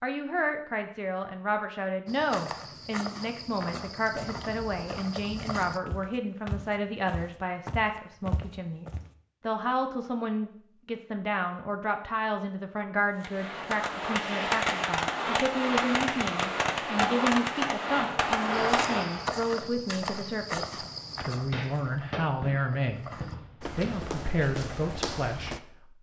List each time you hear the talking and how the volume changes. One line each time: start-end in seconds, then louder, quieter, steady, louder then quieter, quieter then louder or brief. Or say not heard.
0.0-25.9 steady.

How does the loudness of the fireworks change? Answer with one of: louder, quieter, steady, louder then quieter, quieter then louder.
quieter.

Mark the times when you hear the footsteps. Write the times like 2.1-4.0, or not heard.
2.0-9.1, 18.5-25.6.